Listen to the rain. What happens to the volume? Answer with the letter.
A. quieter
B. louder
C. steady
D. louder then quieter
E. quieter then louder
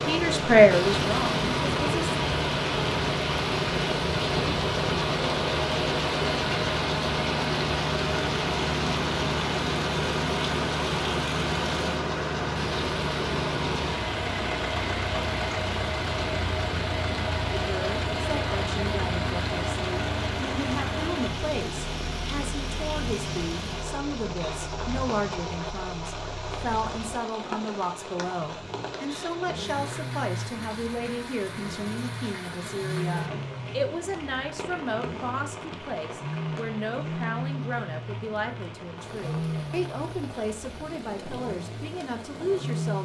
A.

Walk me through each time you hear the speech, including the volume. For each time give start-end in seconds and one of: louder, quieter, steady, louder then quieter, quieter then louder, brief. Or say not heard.
0.1-2.1 brief
17.5-42.9 steady.